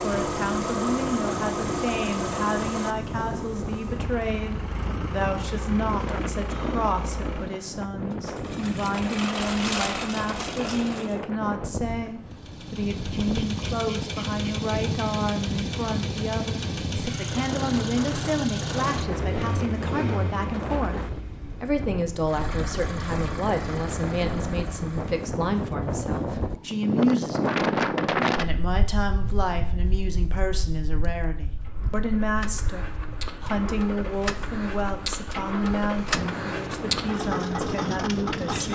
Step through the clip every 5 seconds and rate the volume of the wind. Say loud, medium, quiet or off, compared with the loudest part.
medium, medium, medium, medium, medium, loud, quiet, medium.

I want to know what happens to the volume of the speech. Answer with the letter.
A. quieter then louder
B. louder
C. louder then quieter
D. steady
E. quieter
D.